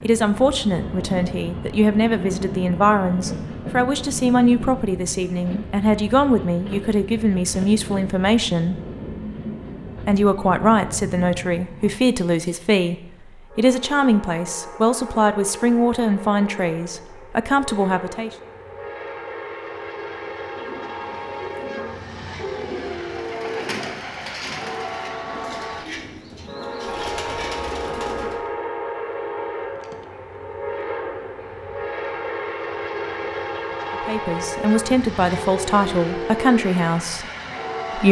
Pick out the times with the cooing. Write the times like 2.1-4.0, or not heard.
20.4-28.4.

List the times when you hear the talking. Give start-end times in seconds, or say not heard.
0.0-8.8, 10.0-18.3, 34.0-37.2.